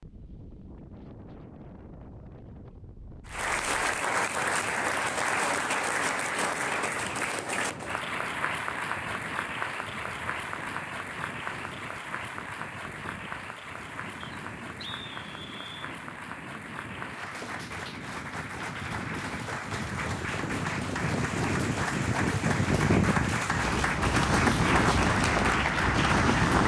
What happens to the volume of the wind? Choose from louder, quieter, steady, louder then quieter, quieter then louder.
louder.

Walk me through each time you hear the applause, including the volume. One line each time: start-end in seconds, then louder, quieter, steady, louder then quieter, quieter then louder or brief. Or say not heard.
3.2-26.6 quieter then louder.